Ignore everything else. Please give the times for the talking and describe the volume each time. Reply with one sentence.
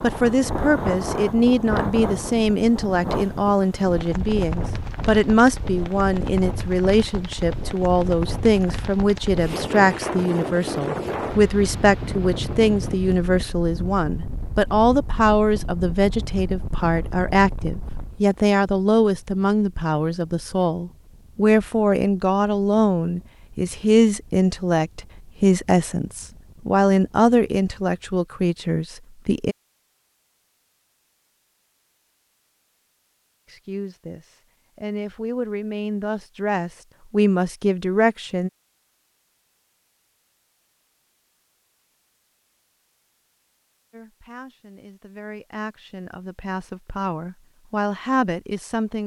You can hear the talking from 0.0 to 29.6 s, at a steady volume; from 33.5 to 38.5 s, getting louder; and from 43.9 to 49.0 s, getting louder.